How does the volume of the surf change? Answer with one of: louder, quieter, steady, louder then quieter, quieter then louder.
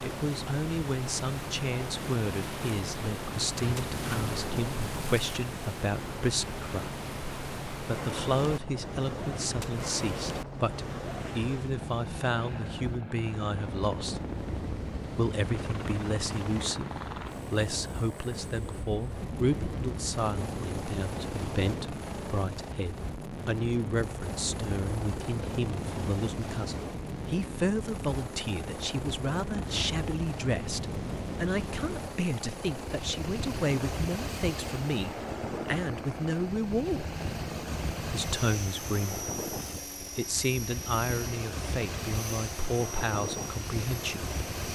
steady.